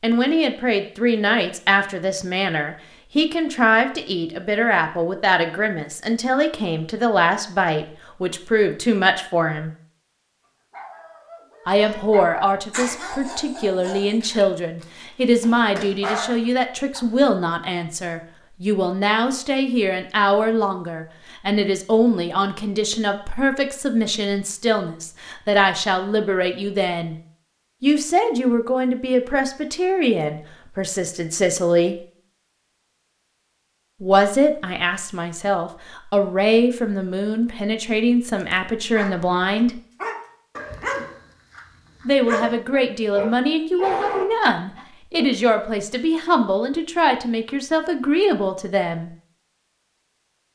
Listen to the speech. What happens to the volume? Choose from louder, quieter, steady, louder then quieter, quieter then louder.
steady.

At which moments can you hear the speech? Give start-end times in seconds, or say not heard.
0.0-9.7, 11.7-27.1, 27.8-31.9, 34.0-39.8, 42.0-49.1.